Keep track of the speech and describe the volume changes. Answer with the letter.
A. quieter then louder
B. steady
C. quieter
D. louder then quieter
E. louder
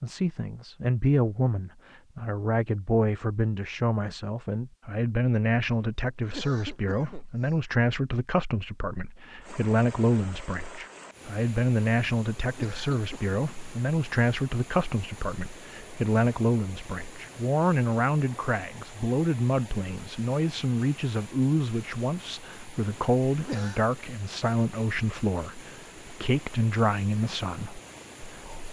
B.